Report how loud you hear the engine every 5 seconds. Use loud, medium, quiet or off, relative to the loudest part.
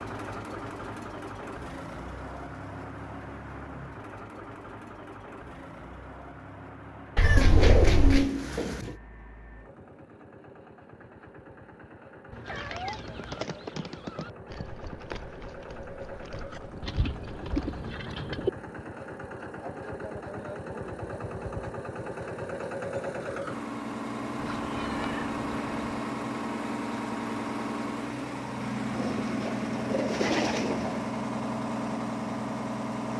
medium, quiet, quiet, medium, loud, loud, loud.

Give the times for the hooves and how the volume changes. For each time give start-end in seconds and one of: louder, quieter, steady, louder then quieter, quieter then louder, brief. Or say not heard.
12.4-17.8 quieter.